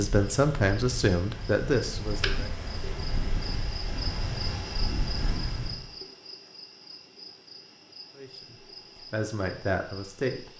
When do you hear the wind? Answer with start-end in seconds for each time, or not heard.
0.0-5.9.